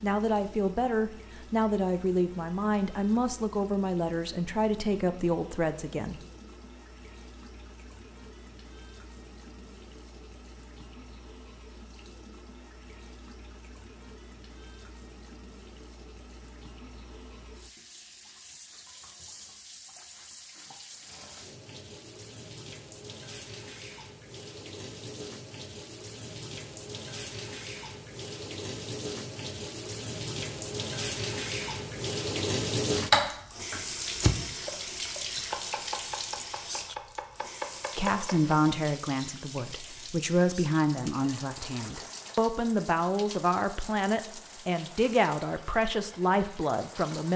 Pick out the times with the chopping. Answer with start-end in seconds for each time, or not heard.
33.0-38.5.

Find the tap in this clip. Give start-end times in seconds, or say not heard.
0.0-47.3.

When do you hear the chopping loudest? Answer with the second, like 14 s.
33 s.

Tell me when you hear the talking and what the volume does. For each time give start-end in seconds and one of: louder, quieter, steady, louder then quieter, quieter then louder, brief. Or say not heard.
0.0-6.2 steady
38.0-47.3 steady.